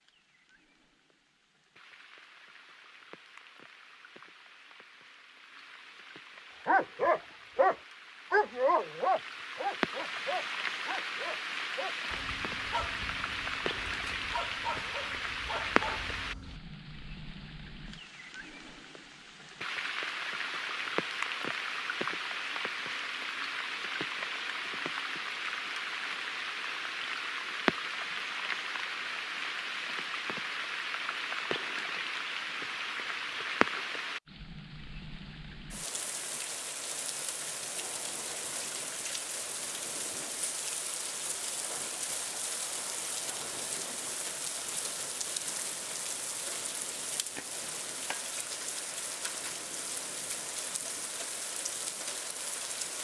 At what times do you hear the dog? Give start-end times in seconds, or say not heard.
6.7-16.6.